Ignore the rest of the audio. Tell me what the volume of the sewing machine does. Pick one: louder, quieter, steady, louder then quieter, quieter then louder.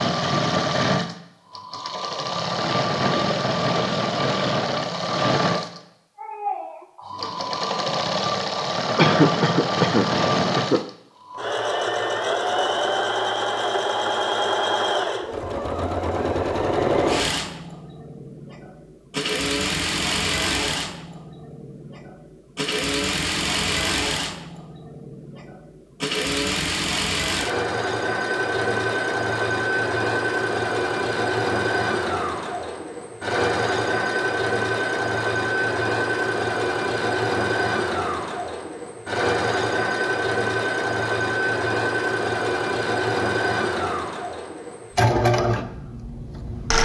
steady.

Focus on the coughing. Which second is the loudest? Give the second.
9 s.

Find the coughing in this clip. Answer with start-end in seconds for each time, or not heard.
8.9-10.9.